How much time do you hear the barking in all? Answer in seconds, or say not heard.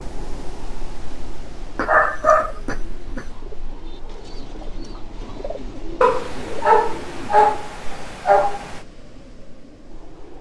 4 s.